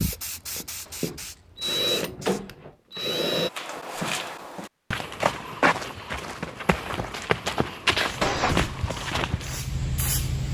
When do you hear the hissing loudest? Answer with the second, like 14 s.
10 s.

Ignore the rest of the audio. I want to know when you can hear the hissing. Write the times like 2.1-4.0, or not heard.
0.0-2.5, 8.1-10.4.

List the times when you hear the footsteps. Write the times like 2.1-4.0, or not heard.
3.5-9.6.